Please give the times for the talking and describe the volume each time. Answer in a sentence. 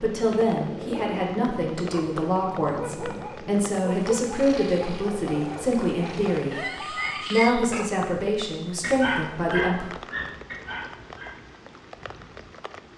You can hear the talking from 0.0 to 6.5 s, at a steady volume; and briefly from 7.3 to 9.9 s.